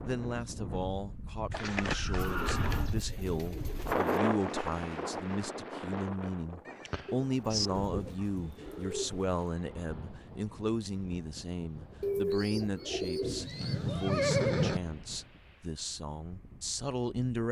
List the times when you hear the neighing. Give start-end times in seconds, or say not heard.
1.5-3.0, 6.7-7.7, 13.2-14.8.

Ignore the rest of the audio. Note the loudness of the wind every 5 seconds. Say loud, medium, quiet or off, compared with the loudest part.
loud, medium, quiet, quiet.